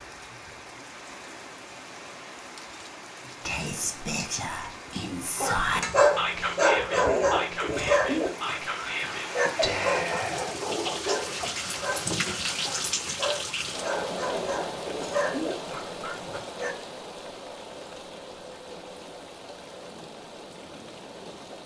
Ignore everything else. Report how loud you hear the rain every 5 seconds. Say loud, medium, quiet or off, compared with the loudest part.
medium, medium, loud, medium, medium.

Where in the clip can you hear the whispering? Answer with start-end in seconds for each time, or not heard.
3.2-10.6.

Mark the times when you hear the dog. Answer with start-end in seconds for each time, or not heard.
5.3-16.8.